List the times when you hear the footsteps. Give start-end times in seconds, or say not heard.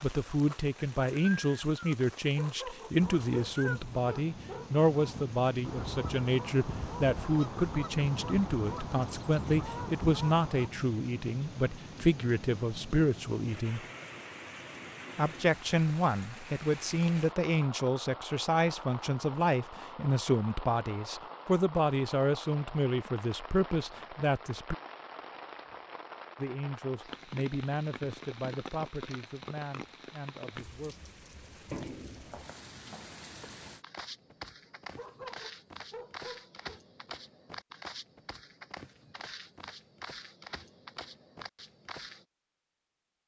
32.1-42.2.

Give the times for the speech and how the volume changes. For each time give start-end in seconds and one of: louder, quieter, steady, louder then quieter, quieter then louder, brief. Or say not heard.
0.0-13.8 steady
15.2-24.8 steady
26.4-31.1 quieter.